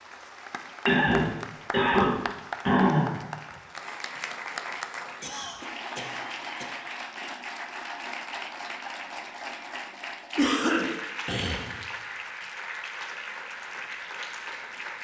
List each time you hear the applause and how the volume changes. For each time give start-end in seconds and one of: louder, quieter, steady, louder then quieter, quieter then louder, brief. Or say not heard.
0.0-14.9 steady.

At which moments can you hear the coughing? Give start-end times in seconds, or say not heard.
0.8-3.2, 5.2-6.8, 10.3-11.8.